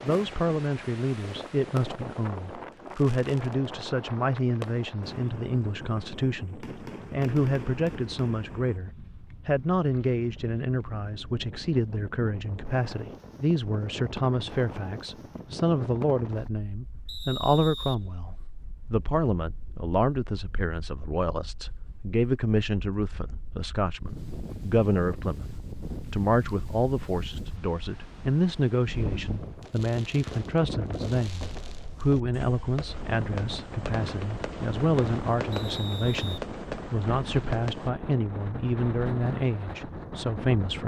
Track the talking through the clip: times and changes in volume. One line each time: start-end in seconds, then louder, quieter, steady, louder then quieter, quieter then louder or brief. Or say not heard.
0.0-40.8 steady.